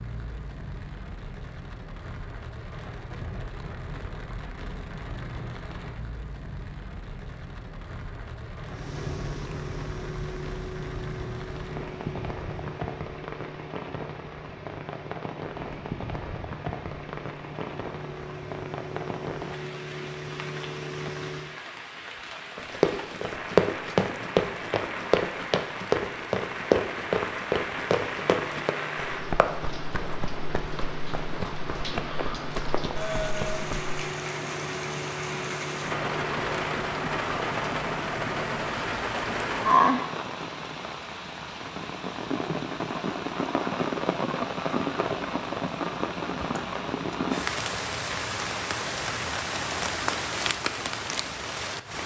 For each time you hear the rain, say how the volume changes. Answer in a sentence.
The rain can be heard from 0.0 to 52.0 s, getting louder.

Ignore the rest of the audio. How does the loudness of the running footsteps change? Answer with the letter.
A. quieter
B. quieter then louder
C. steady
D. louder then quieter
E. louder
A.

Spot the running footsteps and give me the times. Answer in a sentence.
The running footsteps can be heard from 22.6 to 34.0 s.